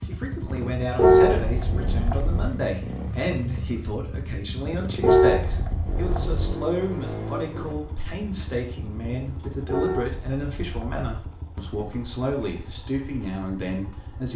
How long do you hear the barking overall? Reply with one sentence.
You can't hear the barking here.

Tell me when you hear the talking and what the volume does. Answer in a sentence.
The talking can be heard from 0.1 to 14.3 s, at a steady volume.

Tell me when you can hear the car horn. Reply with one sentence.
The car horn can be heard from 0.9 to 2.5 s, from 5.0 to 6.5 s and from 9.7 to 10.9 s.